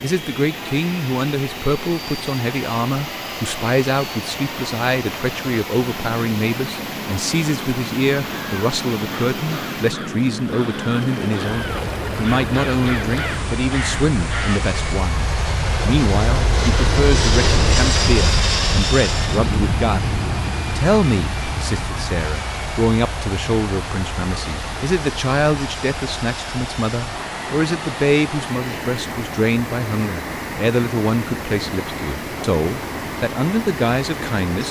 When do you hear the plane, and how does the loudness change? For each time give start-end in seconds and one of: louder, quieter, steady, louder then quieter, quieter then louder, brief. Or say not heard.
0.0-34.6 louder then quieter.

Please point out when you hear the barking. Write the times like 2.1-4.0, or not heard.
not heard.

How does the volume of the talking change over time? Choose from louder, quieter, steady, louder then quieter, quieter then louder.
steady.